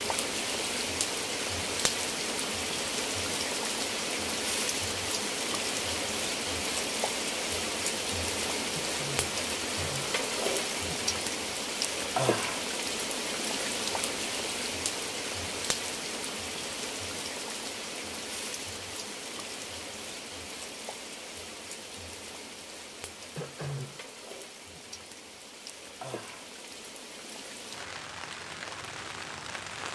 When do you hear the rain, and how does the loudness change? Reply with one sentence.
The rain can be heard from 0.0 to 29.9 s, getting quieter.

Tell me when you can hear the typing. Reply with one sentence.
You can't hear the typing here.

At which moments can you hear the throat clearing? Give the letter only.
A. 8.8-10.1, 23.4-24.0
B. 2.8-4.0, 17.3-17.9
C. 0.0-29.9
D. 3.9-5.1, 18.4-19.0
A.